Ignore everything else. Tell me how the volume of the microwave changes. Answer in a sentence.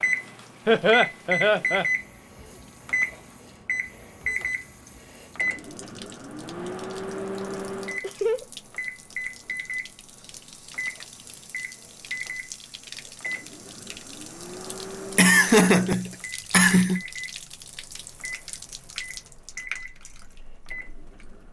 The loudness of the microwave goes down.